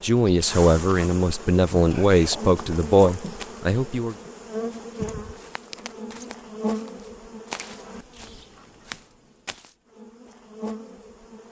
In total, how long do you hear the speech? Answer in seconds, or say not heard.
4 s.